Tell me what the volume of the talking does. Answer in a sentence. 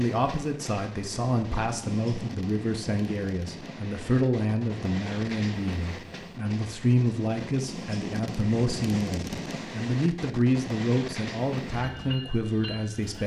The loudness of the talking stays about the same.